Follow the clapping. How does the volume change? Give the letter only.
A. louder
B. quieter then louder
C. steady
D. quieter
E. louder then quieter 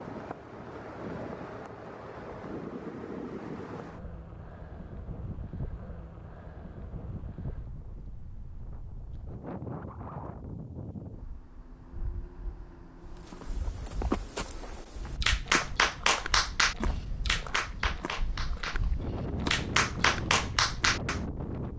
B.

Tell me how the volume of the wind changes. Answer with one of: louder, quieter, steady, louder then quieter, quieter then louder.
quieter then louder.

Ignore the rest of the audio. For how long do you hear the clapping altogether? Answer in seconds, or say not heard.
6 s.